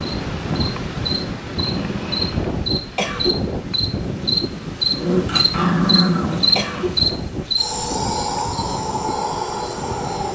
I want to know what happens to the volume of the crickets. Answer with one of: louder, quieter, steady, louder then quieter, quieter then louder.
louder then quieter.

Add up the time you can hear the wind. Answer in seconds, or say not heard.
10 s.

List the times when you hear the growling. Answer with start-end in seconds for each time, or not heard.
4.9-6.8.